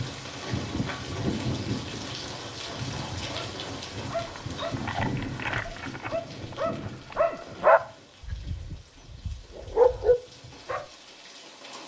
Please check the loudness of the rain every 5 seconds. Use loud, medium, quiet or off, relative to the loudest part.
loud, medium, quiet.